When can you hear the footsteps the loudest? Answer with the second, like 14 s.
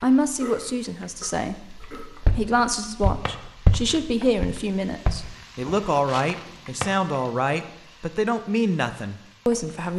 4 s.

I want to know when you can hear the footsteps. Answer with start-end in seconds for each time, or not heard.
2.2-6.5.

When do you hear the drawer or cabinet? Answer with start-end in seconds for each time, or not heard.
2.9-3.4, 6.5-7.0.